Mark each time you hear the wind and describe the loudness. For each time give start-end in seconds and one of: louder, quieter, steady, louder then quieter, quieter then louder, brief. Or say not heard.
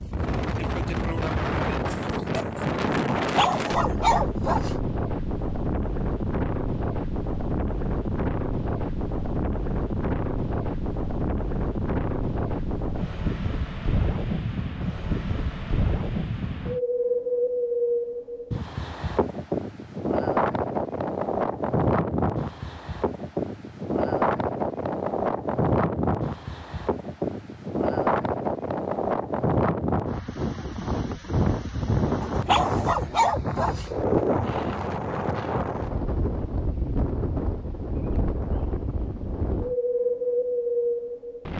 0.0-41.5 steady.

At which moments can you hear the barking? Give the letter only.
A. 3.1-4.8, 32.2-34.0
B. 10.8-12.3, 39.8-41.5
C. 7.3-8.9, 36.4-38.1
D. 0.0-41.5
A.